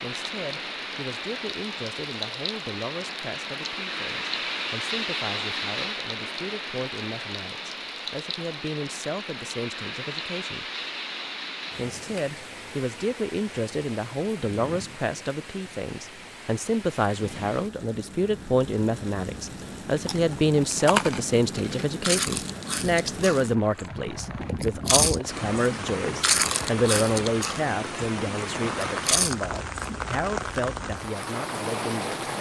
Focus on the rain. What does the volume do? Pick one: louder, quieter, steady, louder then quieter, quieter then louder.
quieter then louder.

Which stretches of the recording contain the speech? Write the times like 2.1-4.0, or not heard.
0.0-10.7, 11.8-32.2.